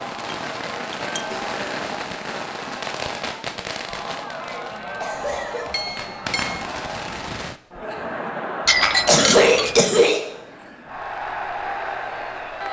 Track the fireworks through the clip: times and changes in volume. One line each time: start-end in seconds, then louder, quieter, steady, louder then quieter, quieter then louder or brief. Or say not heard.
0.0-7.6 quieter then louder.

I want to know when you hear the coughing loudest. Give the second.
9 s.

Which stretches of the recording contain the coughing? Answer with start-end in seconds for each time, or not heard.
1.3-1.8, 5.0-6.5, 8.8-10.2.